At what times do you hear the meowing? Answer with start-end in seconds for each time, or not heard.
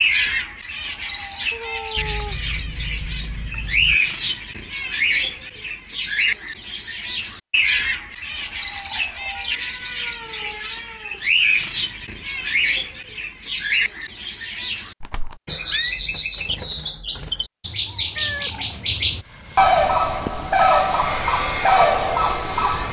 1.5-2.7, 9.3-11.2, 18.1-19.0.